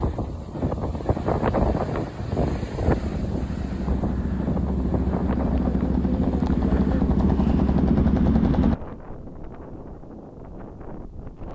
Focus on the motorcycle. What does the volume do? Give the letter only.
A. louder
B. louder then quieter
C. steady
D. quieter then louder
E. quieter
A.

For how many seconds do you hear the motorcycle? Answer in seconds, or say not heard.
6 s.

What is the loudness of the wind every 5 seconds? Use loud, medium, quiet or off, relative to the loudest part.
loud, medium, quiet.